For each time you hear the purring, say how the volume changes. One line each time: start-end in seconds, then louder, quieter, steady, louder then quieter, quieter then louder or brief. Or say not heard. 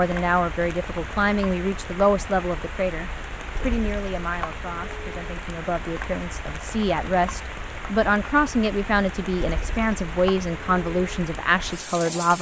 not heard.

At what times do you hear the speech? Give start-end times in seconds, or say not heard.
0.0-12.3.